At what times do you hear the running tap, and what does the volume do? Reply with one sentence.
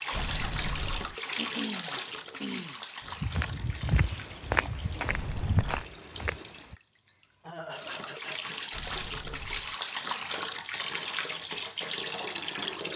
The running tap can be heard from 0.0 to 12.9 s, getting quieter then louder.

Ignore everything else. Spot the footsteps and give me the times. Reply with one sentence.
You can hear the footsteps from 3.0 to 6.8 s.